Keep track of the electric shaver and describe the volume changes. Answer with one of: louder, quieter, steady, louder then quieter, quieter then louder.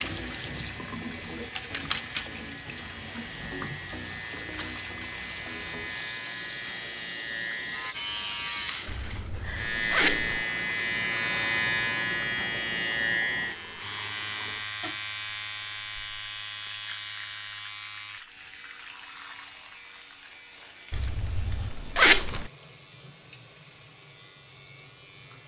louder then quieter.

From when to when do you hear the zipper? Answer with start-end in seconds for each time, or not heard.
9.0-10.4, 20.9-22.5.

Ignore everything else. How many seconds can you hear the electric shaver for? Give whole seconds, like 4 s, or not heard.
25 s.